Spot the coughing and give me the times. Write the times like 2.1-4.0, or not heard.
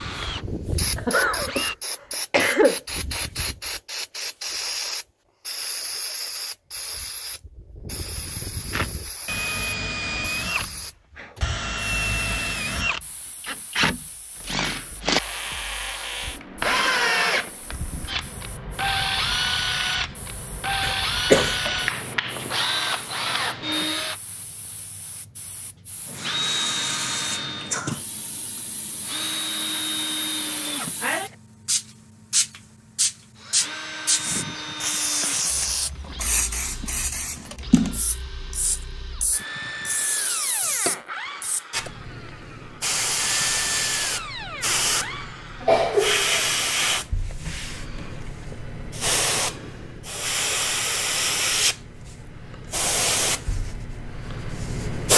0.9-2.8, 20.8-21.8, 45.6-46.9.